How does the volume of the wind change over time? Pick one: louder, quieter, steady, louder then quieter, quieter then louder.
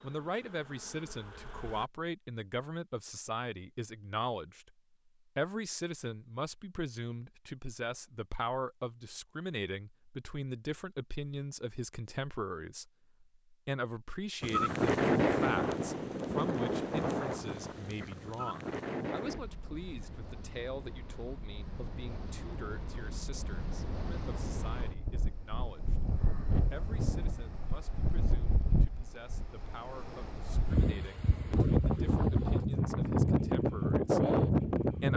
quieter then louder.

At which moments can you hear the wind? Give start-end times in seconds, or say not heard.
14.4-35.1.